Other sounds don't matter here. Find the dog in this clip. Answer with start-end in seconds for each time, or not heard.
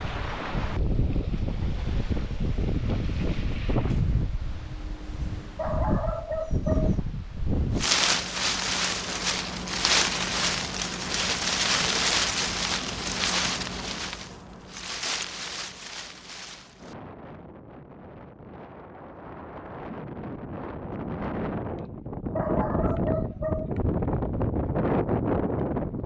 5.5-7.0, 22.4-23.8.